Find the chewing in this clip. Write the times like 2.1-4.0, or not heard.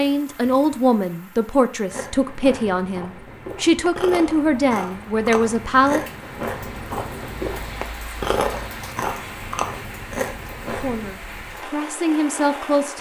1.9-11.1.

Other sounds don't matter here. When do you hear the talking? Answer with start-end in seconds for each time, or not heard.
0.0-6.0, 10.8-12.9.